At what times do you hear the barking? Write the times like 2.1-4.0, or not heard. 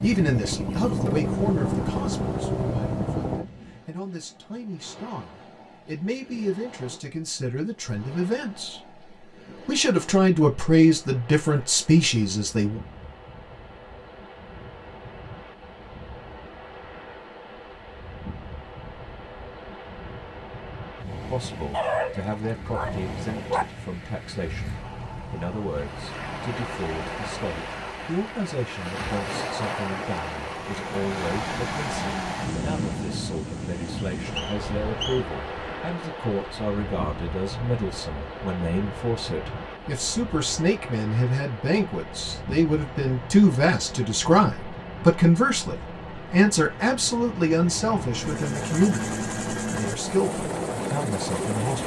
21.7-23.6.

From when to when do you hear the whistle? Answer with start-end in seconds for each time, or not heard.
34.0-35.2.